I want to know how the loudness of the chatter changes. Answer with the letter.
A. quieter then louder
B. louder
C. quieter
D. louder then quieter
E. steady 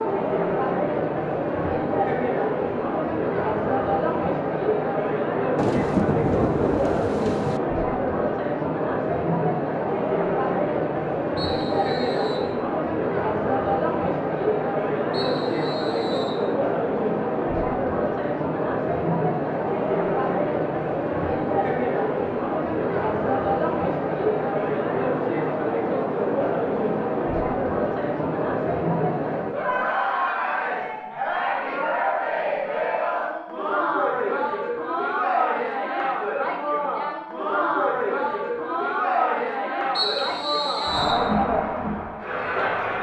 E.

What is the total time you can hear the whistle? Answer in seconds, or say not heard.
4 s.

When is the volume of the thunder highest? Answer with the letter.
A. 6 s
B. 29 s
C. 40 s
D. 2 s
A.